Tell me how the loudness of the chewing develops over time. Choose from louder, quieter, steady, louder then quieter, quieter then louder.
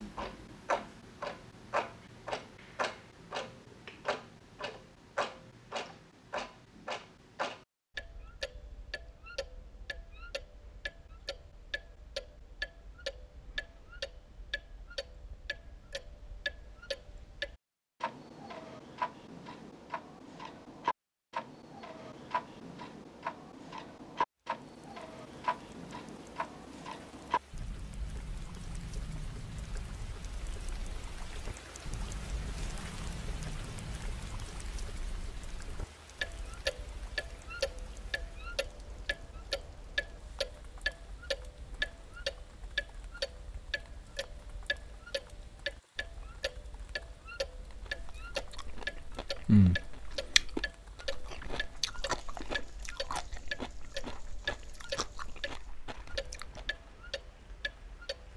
quieter.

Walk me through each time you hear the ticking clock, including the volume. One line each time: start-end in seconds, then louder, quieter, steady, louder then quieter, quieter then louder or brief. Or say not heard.
0.0-58.3 steady.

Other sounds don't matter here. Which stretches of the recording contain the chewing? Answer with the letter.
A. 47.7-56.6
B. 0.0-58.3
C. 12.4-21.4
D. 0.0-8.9
A.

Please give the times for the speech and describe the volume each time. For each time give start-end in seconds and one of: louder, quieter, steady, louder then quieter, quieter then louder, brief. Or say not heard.
not heard.